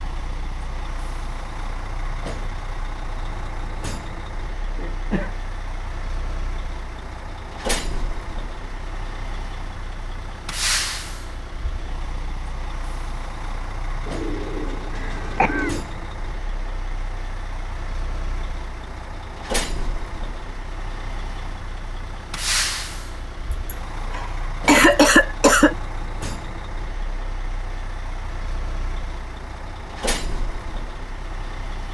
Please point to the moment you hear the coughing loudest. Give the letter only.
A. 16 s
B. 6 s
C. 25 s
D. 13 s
C.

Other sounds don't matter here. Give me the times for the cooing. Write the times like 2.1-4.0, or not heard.
14.1-15.8.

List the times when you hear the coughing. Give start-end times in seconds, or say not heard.
4.8-5.3, 14.9-15.7, 23.5-25.8.